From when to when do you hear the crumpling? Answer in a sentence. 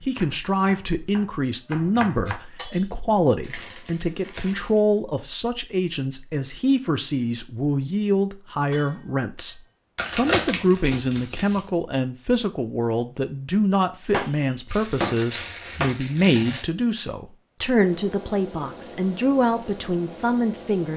The crumpling can be heard from 3.4 to 4.8 s, from 9.9 to 11.6 s and from 14.7 to 16.6 s.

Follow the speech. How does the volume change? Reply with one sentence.
The loudness of the speech stays about the same.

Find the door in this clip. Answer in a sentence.
You can't hear the door here.